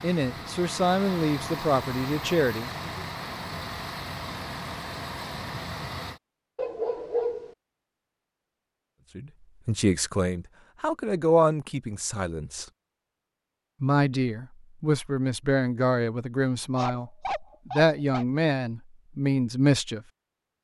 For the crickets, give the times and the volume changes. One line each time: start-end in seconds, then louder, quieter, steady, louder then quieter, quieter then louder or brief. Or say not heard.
not heard.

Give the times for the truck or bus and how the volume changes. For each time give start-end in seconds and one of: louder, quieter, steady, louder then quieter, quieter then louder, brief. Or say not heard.
0.0-6.2 steady.